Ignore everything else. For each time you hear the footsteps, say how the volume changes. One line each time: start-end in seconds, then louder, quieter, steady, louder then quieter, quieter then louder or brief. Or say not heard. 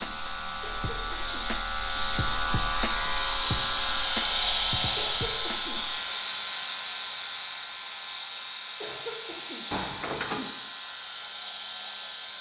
not heard.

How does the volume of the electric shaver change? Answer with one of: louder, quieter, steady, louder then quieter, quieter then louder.
quieter.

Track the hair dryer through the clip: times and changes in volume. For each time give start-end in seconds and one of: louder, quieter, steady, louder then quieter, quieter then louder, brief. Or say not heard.
0.0-12.3 louder then quieter.